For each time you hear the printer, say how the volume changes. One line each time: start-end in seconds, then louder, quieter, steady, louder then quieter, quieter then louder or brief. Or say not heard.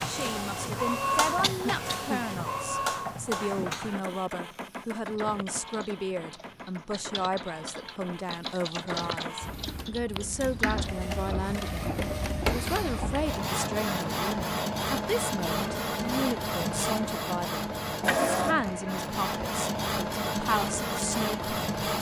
0.0-21.9 quieter then louder.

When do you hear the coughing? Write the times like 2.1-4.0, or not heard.
1.4-2.2.